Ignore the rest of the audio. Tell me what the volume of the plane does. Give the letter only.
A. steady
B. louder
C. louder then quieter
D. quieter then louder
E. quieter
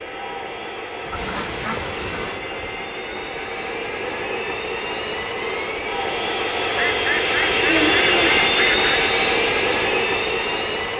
B.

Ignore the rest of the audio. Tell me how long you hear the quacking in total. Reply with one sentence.
The quacking can be heard for 4 seconds in total.